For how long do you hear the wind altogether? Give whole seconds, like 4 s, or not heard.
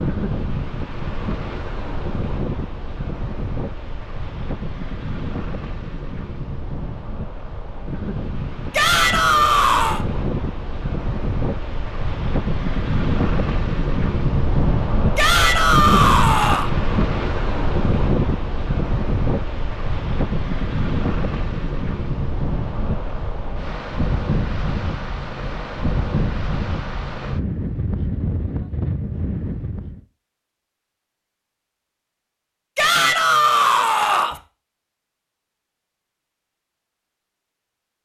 30 s.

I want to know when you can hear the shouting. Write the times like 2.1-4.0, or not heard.
8.7-10.1, 15.2-16.7, 32.8-34.4.